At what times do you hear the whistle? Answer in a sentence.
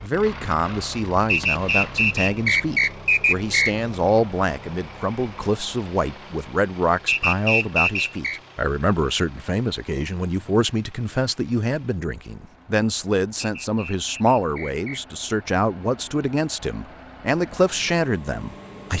You can hear the whistle from 1.2 to 3.8 s, from 7.0 to 8.4 s and from 13.4 to 15.0 s.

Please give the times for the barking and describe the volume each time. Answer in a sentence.
You can't hear the barking here.